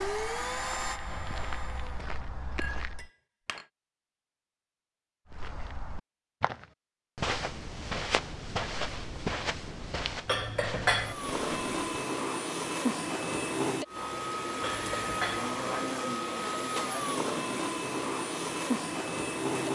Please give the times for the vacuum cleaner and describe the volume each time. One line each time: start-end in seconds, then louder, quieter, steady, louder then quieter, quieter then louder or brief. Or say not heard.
0.0-2.1 brief
10.9-19.7 steady.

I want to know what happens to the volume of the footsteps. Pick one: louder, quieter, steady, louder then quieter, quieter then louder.
louder then quieter.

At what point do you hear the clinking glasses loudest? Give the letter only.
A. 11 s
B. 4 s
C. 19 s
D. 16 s
A.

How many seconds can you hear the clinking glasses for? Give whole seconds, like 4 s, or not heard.
3 s.